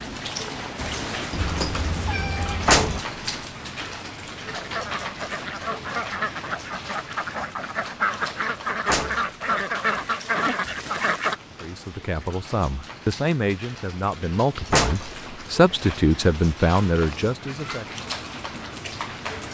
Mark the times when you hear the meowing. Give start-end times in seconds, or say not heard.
1.3-3.0, 16.9-17.6.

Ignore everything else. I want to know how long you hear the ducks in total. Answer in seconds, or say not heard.
7 s.